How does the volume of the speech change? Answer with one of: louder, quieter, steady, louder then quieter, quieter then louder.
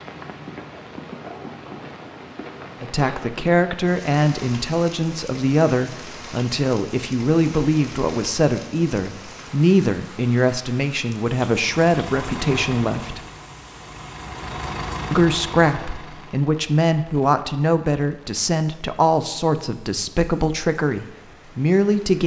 steady.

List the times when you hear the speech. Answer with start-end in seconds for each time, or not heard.
2.8-13.2, 15.1-22.2.